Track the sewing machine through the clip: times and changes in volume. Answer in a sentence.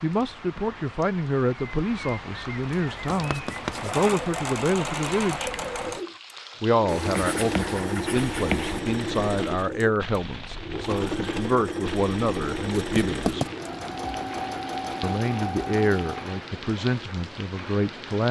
The sewing machine can be heard from 2.7 to 16.4 s, at a steady volume.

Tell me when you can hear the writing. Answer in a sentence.
The writing can be heard from 3.0 to 4.0 s, from 6.8 to 8.8 s and from 12.7 to 13.6 s.